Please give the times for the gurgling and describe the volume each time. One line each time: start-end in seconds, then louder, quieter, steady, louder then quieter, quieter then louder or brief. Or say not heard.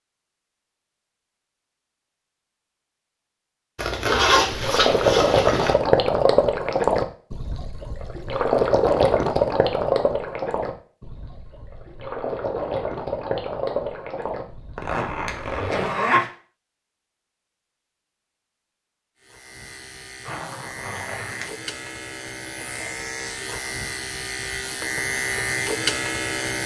4.5-15.9 quieter.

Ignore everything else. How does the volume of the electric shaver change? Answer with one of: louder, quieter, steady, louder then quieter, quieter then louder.
louder.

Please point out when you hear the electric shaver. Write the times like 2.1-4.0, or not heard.
19.1-26.6.